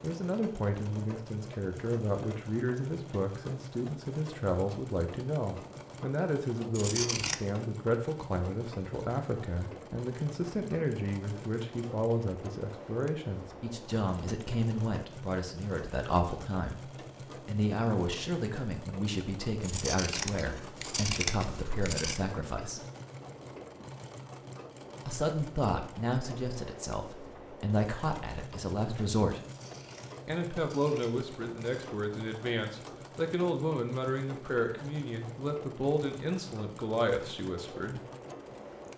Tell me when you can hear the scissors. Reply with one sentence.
The scissors can be heard from 6.8 to 7.3 s, from 19.6 to 22.2 s and from 29.4 to 31.9 s.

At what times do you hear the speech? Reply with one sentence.
The speech can be heard from 0.0 to 22.8 s, from 25.1 to 29.4 s and from 30.2 to 38.0 s.